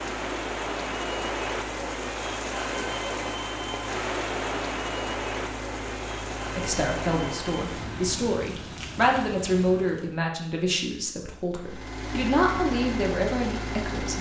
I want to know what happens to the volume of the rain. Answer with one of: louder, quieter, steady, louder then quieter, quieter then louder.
quieter.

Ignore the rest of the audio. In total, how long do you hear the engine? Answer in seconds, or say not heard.
11 s.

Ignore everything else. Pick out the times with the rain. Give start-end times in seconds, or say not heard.
0.0-10.2.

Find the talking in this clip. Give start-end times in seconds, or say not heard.
6.5-14.1.